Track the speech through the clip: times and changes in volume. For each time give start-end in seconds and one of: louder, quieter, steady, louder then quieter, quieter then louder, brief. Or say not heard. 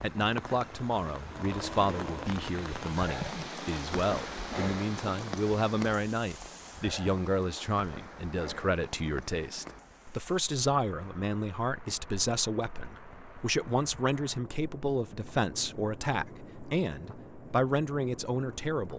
0.0-18.9 steady.